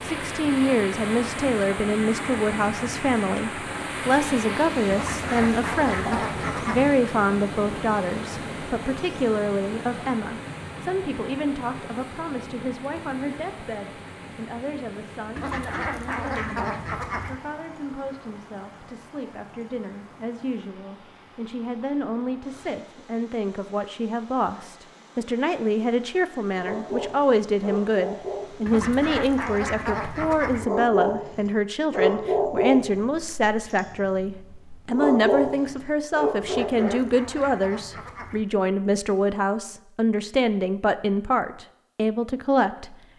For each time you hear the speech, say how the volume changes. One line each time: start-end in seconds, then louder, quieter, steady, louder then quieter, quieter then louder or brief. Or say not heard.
0.0-43.0 quieter then louder.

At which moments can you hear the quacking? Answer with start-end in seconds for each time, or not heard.
4.9-6.9, 15.3-17.4, 28.6-30.6, 36.4-38.5.